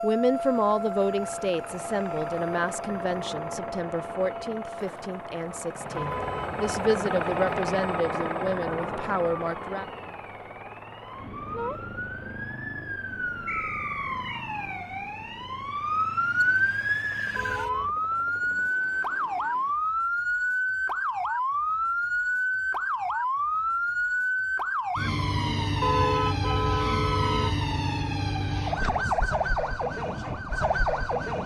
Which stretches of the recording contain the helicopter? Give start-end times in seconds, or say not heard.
0.0-19.9.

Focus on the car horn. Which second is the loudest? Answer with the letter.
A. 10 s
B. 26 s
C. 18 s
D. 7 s
B.